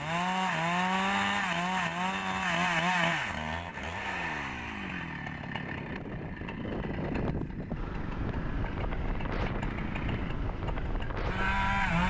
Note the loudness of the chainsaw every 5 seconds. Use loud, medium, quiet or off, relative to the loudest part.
loud, medium, loud.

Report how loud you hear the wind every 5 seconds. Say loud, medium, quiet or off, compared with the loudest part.
quiet, loud, loud.